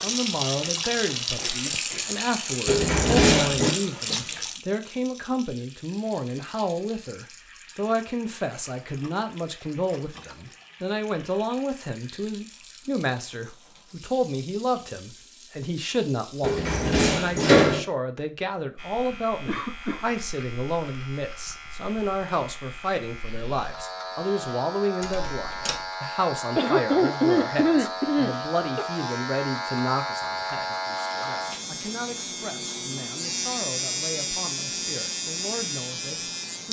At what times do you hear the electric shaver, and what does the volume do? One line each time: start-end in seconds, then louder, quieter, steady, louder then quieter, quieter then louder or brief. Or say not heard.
18.8-36.6 louder.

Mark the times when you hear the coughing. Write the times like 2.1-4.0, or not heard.
1.4-2.1, 19.4-20.1, 26.6-28.9.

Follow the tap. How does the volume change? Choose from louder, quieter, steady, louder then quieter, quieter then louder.
quieter.